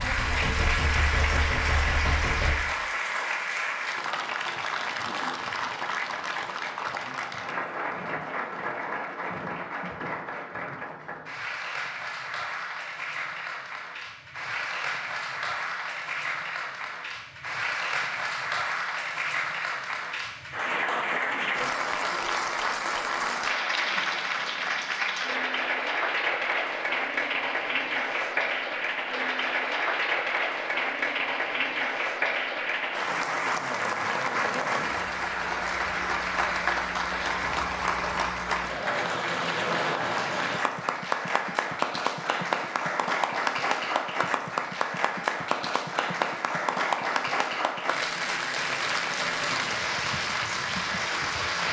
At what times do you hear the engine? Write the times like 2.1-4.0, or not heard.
0.0-2.6.